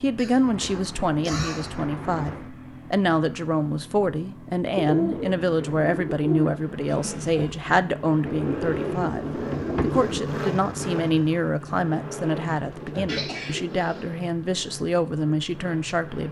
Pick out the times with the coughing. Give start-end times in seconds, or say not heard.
0.1-1.8, 6.9-7.7, 13.1-14.1.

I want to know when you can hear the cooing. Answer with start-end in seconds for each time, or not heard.
0.5-2.5, 4.8-6.5, 8.2-10.2, 12.2-13.8.